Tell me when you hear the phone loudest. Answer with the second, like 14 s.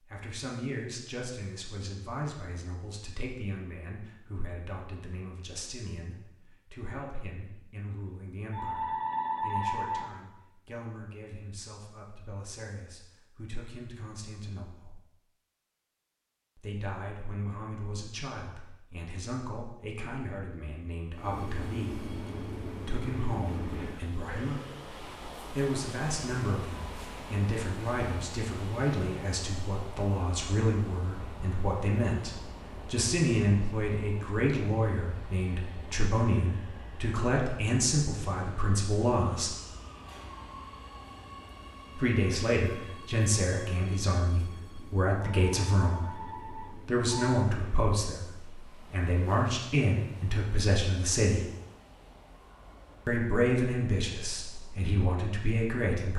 10 s.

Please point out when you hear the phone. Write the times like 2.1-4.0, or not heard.
8.5-10.1, 45.3-47.5.